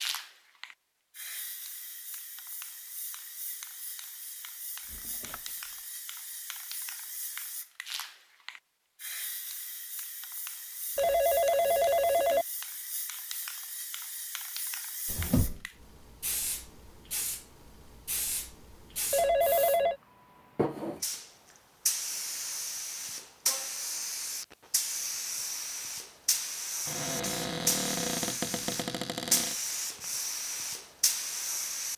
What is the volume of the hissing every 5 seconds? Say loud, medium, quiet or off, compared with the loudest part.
medium, medium, medium, medium, loud, loud, loud.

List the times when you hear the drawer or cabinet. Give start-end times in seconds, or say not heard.
4.9-5.5, 15.1-15.7, 26.9-29.6.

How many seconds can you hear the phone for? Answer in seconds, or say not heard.
2 s.